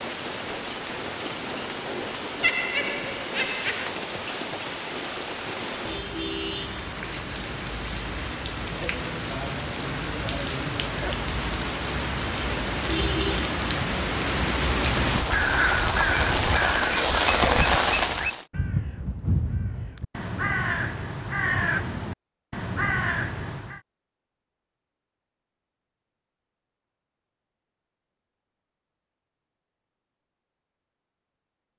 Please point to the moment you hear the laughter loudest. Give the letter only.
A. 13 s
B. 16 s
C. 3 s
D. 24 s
C.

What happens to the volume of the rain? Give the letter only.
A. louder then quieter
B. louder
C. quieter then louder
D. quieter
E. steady
B.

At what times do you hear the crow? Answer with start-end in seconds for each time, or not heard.
15.2-23.8.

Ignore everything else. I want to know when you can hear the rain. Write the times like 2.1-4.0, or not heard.
0.0-18.4.